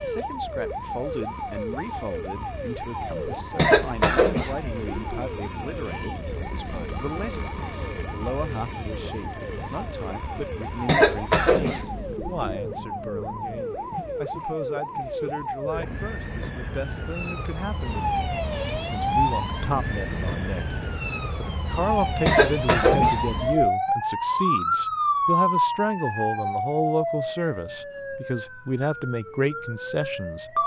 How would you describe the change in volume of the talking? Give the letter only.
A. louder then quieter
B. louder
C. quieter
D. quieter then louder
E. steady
B.